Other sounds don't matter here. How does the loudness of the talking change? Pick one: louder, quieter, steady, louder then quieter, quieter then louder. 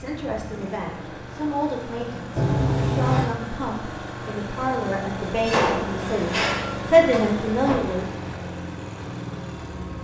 louder.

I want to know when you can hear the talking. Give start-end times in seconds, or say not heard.
0.0-8.1.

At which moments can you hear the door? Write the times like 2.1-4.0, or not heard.
2.4-3.2, 5.3-7.8.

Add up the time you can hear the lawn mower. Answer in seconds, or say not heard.
10 s.